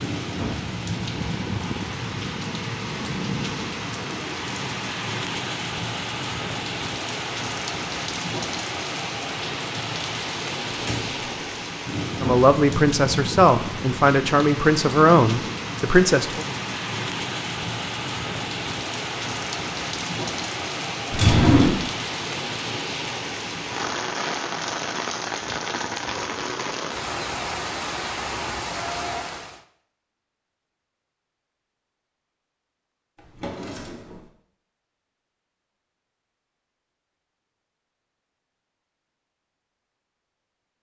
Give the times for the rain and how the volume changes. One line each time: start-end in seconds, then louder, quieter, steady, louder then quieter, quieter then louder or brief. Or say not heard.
0.0-29.6 steady.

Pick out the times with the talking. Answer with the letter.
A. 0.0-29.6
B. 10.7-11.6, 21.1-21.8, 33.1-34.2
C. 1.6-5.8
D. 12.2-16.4
D.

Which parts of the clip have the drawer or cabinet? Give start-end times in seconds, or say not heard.
10.7-11.6, 21.1-21.8, 33.1-34.2.